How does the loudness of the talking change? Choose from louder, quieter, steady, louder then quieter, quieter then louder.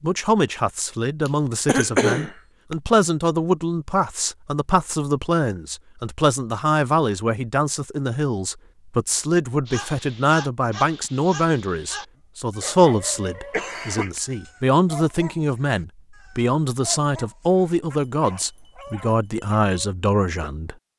steady.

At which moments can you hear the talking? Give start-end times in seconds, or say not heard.
0.0-20.8.